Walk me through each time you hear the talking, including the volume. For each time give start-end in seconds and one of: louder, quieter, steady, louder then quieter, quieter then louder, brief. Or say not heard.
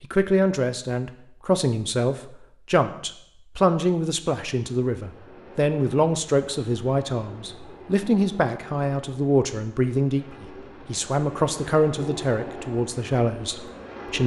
0.0-14.2 steady.